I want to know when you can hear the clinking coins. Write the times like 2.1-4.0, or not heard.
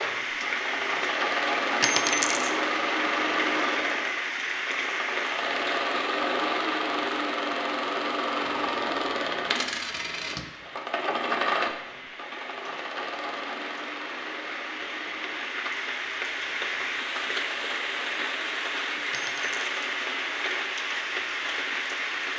1.8-2.5, 8.4-10.5, 19.1-19.9.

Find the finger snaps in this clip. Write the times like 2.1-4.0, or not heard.
not heard.